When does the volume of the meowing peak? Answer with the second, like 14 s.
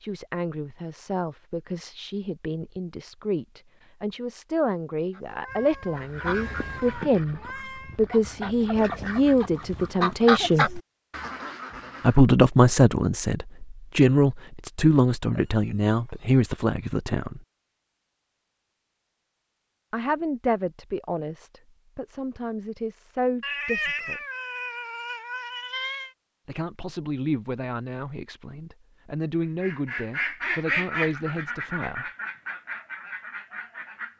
24 s.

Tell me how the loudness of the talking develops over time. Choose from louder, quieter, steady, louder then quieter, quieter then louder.
louder then quieter.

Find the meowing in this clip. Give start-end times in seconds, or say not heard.
5.3-8.0, 15.3-16.4, 23.4-26.1.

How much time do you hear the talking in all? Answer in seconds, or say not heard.
26 s.